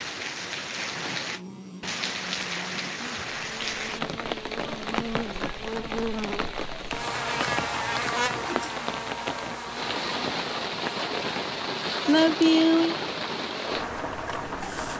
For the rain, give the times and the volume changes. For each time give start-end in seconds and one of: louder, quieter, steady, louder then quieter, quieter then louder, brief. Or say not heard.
0.0-14.9 steady.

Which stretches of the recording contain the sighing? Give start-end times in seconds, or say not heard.
12.1-12.9.